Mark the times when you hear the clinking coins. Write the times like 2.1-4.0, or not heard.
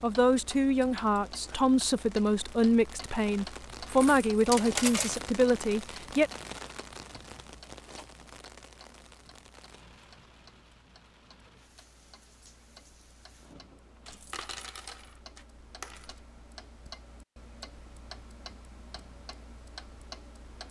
3.9-5.2, 14.1-16.2.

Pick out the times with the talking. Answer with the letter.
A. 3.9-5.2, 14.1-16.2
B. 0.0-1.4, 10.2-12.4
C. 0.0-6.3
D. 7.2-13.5
C.